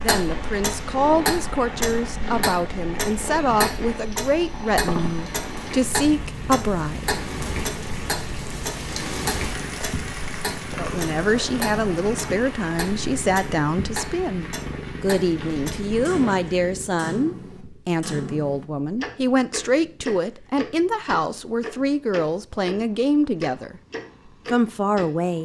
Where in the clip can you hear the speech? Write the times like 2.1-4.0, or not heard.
0.0-7.5, 10.8-23.8, 24.5-25.4.